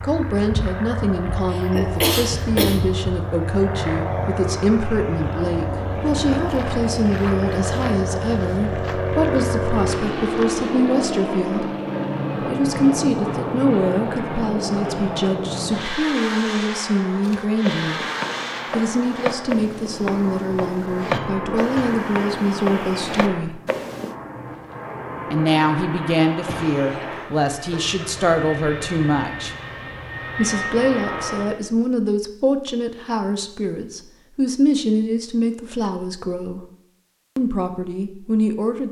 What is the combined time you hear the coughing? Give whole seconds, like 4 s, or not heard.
4 s.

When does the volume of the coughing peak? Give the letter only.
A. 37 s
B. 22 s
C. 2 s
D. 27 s
C.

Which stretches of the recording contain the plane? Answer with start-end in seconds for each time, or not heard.
0.0-31.6.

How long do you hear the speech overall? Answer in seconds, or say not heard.
34 s.